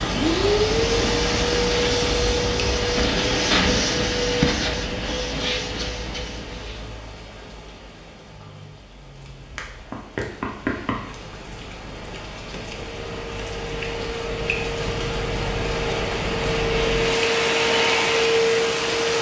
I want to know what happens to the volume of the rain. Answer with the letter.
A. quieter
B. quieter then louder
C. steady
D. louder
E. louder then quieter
B.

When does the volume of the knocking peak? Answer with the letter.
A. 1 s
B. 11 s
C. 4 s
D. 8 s
B.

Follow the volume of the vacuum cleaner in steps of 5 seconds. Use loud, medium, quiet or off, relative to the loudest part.
loud, medium, medium, loud.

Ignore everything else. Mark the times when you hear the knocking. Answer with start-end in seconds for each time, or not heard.
9.2-11.2.